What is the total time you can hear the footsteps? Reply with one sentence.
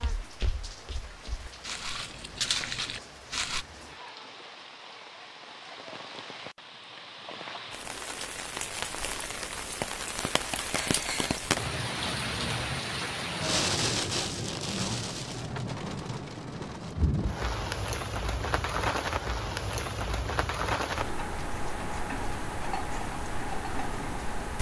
You can hear the footsteps for 4 seconds altogether.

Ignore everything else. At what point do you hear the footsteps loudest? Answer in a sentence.
The volume of the footsteps peaks at 3 seconds.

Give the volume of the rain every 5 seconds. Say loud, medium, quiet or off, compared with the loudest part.
quiet, medium, loud, loud, loud.